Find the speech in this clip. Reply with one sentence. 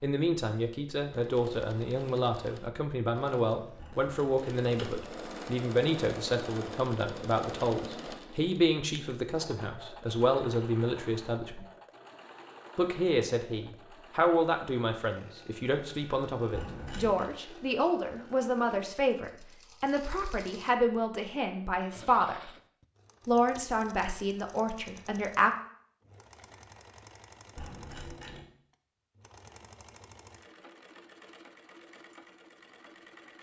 The speech can be heard from 0.0 to 11.7 s, from 12.8 to 22.4 s and from 23.2 to 25.5 s.